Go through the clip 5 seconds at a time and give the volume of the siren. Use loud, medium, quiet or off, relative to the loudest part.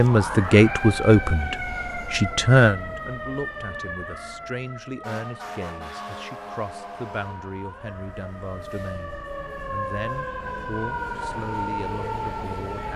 loud, medium, loud.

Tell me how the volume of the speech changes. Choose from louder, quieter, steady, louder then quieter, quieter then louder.
quieter.